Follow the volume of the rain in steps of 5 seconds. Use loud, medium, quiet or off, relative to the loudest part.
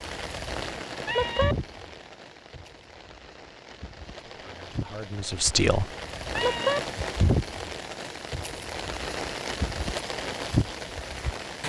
medium, loud, loud.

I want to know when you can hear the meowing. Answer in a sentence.
The meowing can be heard from 1.1 to 1.6 s and from 6.3 to 6.8 s.